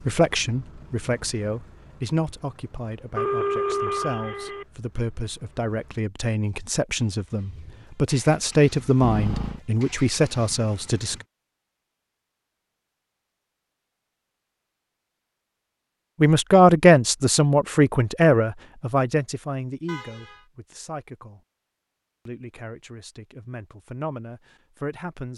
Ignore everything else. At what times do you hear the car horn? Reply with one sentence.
You can hear the car horn from 3.1 to 4.7 s, from 9.0 to 9.6 s and from 19.9 to 20.4 s.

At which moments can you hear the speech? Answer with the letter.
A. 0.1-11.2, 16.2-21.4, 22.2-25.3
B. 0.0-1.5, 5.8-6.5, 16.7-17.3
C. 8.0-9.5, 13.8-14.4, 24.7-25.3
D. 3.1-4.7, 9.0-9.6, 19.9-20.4
A.